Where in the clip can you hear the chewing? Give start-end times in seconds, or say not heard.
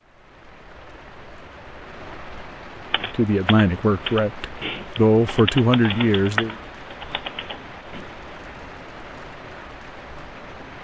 not heard.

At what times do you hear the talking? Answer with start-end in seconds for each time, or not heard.
3.1-6.5.